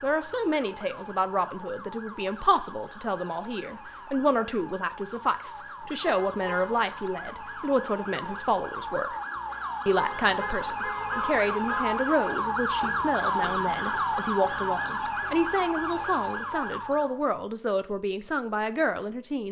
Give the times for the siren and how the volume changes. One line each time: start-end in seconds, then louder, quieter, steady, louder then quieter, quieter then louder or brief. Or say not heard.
0.0-17.2 louder.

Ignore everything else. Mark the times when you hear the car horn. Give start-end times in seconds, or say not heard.
6.0-6.7, 9.9-11.9.